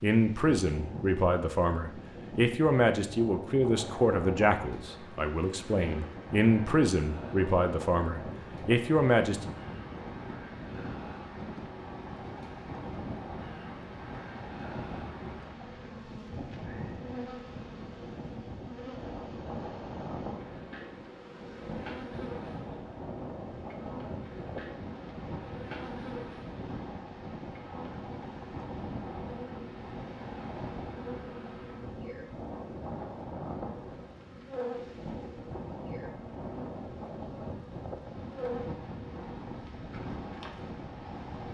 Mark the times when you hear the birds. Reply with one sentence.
You can't hear the birds here.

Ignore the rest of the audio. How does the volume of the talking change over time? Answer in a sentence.
The volume of the talking stays about the same.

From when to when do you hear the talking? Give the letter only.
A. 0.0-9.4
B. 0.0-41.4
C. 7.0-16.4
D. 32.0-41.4
A.